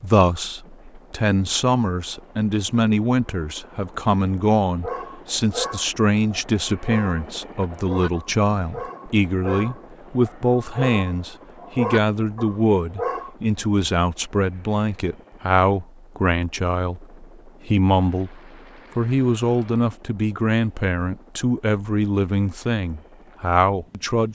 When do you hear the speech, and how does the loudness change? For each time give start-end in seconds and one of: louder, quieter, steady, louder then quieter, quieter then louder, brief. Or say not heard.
0.0-24.3 steady.